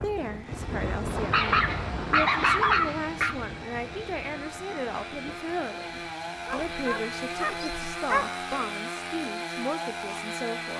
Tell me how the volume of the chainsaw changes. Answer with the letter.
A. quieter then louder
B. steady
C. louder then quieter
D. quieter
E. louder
E.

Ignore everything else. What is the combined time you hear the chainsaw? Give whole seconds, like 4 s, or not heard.
11 s.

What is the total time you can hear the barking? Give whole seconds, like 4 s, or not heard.
4 s.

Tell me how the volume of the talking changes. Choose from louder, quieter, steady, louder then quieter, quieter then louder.
steady.